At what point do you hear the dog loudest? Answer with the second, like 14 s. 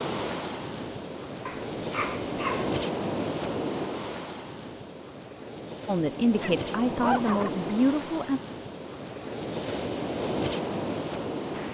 7 s.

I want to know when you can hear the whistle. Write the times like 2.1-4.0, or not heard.
not heard.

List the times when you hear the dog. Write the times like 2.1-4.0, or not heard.
1.4-2.8, 6.3-7.6.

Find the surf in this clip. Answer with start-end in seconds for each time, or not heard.
0.0-11.6.